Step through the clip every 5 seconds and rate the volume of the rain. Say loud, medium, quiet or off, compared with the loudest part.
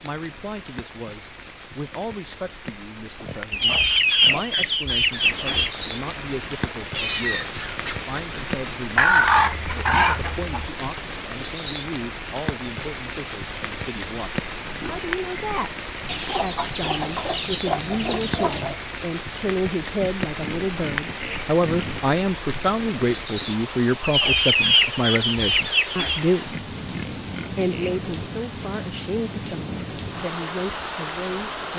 medium, loud, loud, loud, loud, loud, loud.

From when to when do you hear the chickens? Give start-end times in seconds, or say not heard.
3.5-5.8, 8.9-10.7, 16.1-18.8, 24.0-26.2.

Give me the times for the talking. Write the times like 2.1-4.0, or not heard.
0.0-15.8, 16.4-26.6, 27.5-31.7.